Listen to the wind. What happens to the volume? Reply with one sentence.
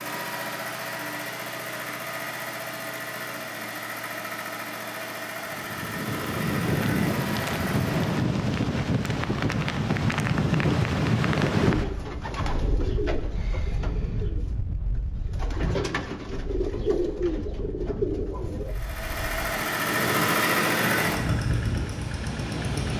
The loudness of the wind goes down, then up.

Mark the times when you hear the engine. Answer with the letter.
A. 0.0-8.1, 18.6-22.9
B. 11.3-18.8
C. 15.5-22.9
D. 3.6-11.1
A.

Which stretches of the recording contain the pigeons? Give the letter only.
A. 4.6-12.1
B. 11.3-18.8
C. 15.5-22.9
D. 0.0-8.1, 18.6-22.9
B.